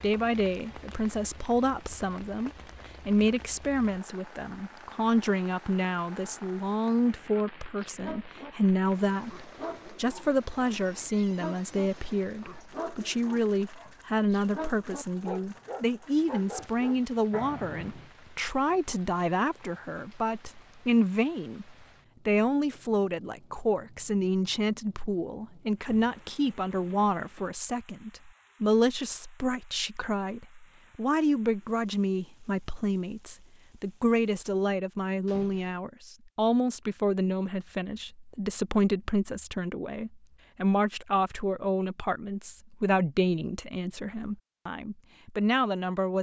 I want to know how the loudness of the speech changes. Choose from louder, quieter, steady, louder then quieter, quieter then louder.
steady.